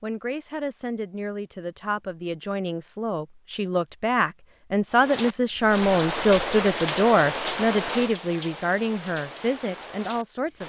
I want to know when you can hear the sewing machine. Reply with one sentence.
You can't hear the sewing machine here.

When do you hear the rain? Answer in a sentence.
You can hear the rain from 4.9 to 10.6 s.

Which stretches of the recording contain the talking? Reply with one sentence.
The talking can be heard from 0.0 to 10.6 s.